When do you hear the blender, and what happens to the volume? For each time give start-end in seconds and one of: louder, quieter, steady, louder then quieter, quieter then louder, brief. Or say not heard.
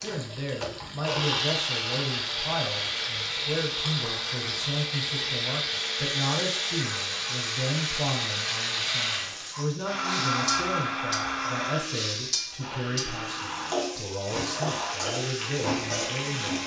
0.0-16.6 quieter.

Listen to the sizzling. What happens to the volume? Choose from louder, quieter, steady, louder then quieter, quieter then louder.
louder.